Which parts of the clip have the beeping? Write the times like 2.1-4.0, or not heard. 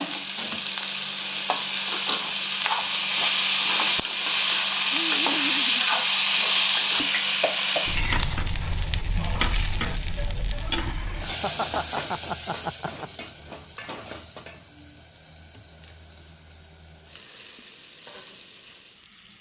not heard.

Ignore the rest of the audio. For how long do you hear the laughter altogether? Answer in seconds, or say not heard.
3 s.